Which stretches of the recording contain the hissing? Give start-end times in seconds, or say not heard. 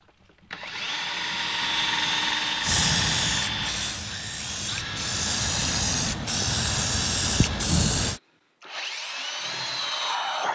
2.6-8.2.